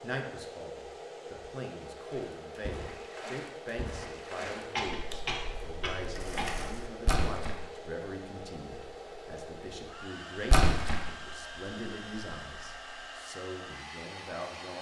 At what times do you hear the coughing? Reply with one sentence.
You can hear the coughing from 4.5 to 6.5 s.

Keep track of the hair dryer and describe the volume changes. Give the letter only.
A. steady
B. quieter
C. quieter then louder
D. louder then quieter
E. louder
A.